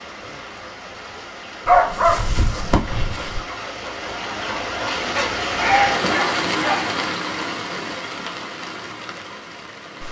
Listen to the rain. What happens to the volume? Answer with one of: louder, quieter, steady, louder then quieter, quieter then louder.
louder then quieter.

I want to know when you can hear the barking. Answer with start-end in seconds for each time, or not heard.
1.6-3.4, 5.6-7.0.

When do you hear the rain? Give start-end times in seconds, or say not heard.
0.0-10.0.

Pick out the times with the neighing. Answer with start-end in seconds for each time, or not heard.
not heard.